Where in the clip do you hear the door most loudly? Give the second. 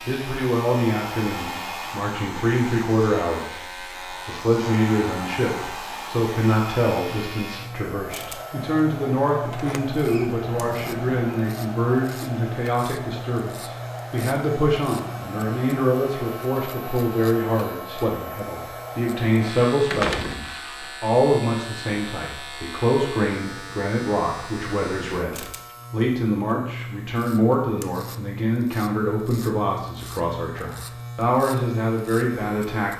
20 s.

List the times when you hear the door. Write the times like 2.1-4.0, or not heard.
9.5-11.4, 19.9-20.4.